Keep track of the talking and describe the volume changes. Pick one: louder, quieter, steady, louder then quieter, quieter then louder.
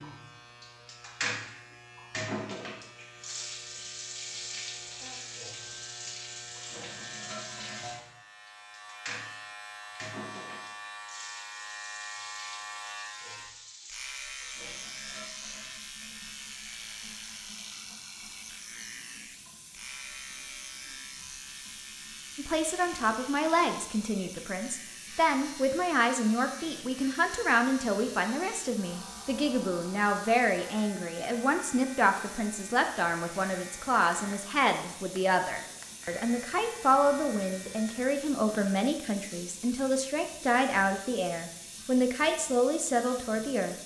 steady.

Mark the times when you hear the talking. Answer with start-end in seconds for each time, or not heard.
22.4-43.8.